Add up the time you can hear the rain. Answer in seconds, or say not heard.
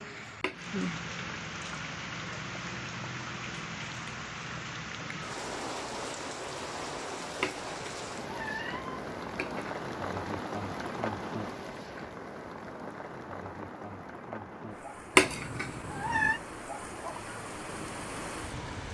19 s.